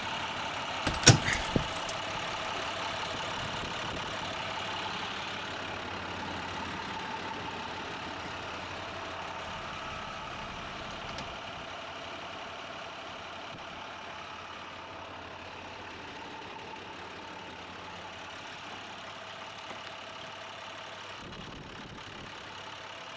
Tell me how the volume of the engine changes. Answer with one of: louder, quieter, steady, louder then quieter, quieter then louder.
quieter.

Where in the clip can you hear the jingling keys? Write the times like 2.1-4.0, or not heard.
0.8-2.6, 9.4-11.4, 18.6-20.4.